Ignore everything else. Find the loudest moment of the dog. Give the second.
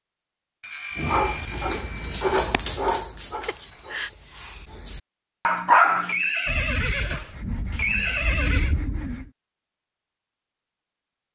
6 s.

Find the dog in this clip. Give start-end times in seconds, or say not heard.
0.9-6.2.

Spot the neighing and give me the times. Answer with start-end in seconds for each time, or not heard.
3.4-4.1, 6.0-8.8.